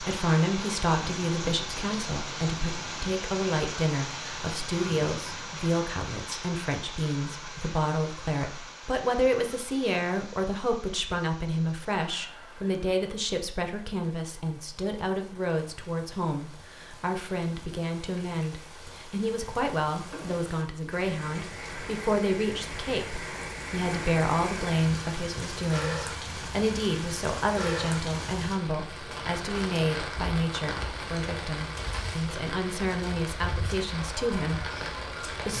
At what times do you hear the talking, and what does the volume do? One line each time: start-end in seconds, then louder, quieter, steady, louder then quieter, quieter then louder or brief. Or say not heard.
0.0-35.5 steady.